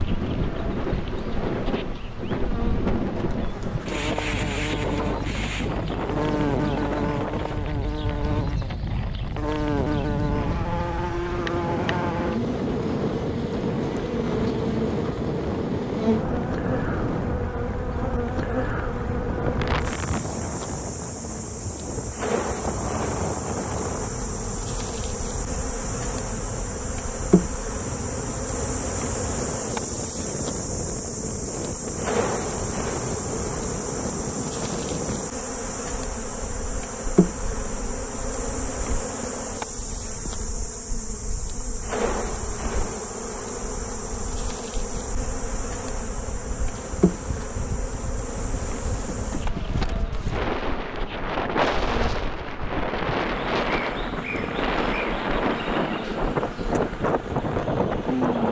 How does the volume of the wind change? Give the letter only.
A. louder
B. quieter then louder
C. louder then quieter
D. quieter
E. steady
B.